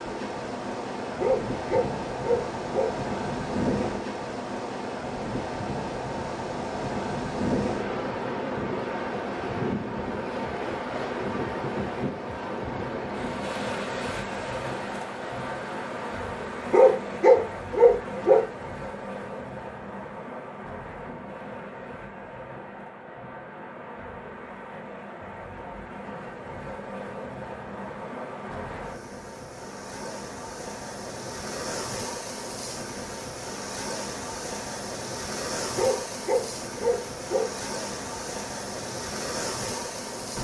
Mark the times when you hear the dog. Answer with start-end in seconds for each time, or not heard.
1.1-3.0, 16.6-18.4, 35.7-37.5.